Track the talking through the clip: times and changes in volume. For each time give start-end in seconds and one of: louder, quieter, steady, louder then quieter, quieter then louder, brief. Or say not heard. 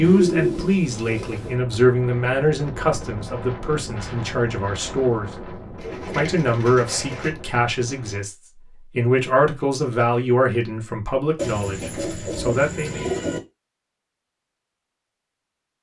0.0-13.1 steady.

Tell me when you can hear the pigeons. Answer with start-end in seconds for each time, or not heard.
0.0-1.6, 5.8-7.3, 11.3-13.4.